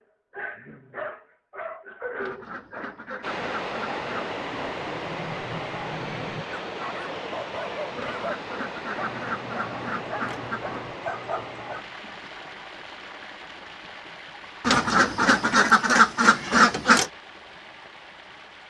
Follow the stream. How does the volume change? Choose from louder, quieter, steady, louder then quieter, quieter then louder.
quieter.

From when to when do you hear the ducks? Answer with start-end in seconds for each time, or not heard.
2.1-4.3, 8.0-10.8, 14.6-17.1.